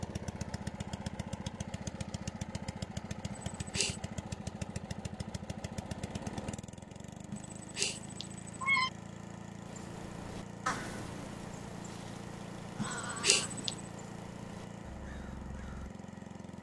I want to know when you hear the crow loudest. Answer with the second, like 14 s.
11 s.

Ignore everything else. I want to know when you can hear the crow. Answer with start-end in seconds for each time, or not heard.
9.7-15.9.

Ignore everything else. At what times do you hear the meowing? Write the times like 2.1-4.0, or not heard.
3.3-4.0, 7.3-8.9, 12.8-13.8.